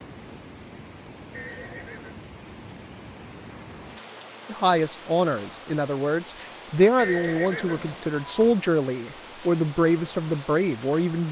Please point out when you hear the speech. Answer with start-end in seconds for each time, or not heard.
4.5-11.2.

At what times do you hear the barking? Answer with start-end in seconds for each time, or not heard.
not heard.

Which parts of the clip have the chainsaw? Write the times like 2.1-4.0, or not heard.
not heard.